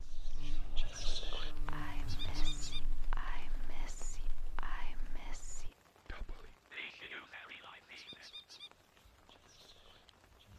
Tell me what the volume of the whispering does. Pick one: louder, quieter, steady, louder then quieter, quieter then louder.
quieter.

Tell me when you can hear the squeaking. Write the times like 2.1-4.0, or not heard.
2.0-2.8, 8.0-8.7.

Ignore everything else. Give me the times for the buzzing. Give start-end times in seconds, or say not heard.
0.0-5.7.